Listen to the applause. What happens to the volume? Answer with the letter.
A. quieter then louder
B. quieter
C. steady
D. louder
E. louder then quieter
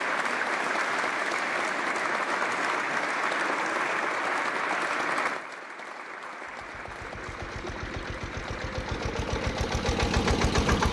B.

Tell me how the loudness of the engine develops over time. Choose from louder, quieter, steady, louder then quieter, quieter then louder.
louder.